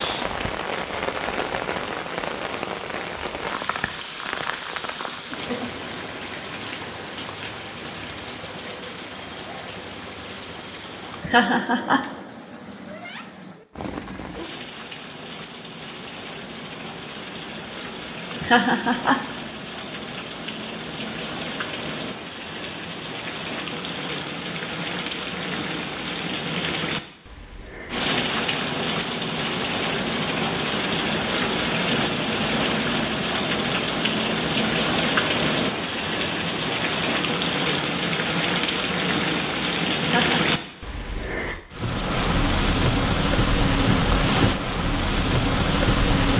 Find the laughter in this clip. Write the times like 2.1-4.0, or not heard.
11.1-12.0, 18.3-19.2, 40.0-40.5.